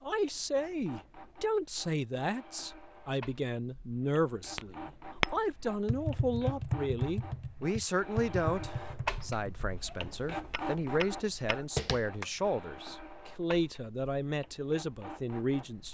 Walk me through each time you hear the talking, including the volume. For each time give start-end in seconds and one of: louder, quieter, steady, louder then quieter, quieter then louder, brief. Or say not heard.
0.0-15.9 steady.